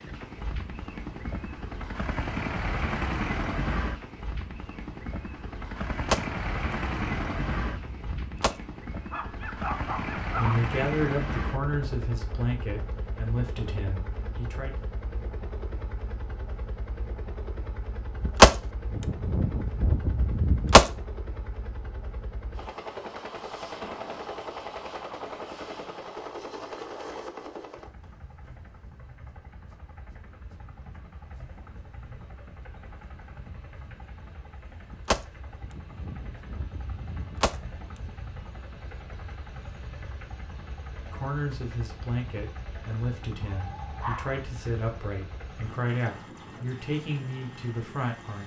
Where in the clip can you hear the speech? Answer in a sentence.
You can hear the speech from 10.3 to 14.8 s and from 41.0 to 48.4 s.